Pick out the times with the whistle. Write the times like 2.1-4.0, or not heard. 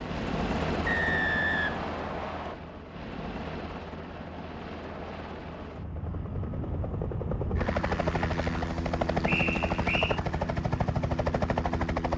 0.8-2.5, 9.2-10.2.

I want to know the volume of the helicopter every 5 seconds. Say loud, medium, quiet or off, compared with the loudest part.
medium, loud, loud.